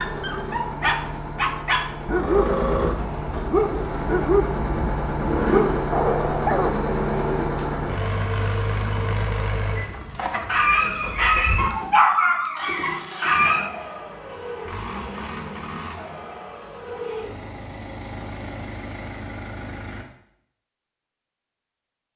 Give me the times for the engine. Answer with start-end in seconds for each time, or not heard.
0.0-20.1.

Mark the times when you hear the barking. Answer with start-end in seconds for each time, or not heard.
0.0-6.7, 10.4-13.7.